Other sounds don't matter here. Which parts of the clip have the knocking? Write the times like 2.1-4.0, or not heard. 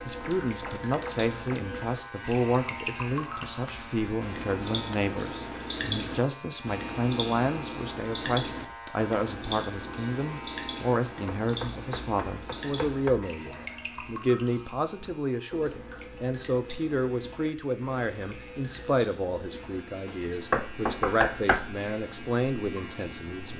0.2-1.6, 11.4-13.3, 20.1-21.8.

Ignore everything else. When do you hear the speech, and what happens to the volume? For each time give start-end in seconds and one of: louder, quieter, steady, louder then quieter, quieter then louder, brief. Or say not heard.
0.1-23.5 steady.